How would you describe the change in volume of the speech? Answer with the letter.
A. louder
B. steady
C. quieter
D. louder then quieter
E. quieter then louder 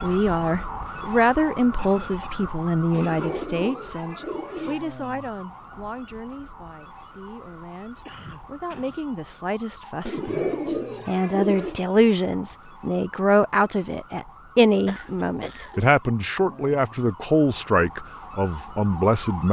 E.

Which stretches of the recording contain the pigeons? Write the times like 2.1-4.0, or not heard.
2.9-4.8, 10.1-11.8.